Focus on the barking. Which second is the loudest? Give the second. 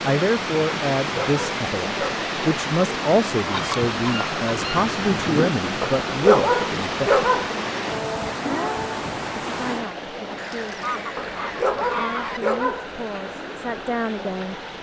6 s.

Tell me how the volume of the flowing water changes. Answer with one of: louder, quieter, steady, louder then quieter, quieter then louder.
quieter.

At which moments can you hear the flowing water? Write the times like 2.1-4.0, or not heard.
0.0-14.7.